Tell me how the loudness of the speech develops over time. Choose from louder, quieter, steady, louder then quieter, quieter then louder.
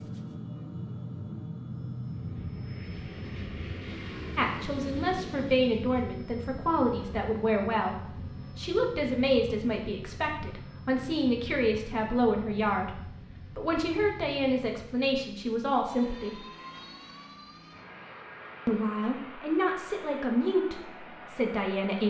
steady.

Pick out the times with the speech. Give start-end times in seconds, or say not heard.
4.3-16.4, 18.6-22.0.